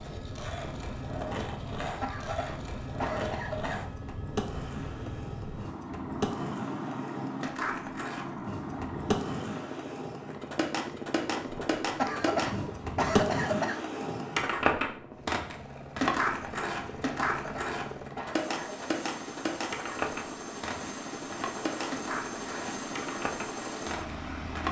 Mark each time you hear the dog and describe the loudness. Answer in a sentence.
The dog can't be heard in this clip.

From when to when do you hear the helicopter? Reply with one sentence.
You can hear the helicopter from 0.0 to 24.6 s.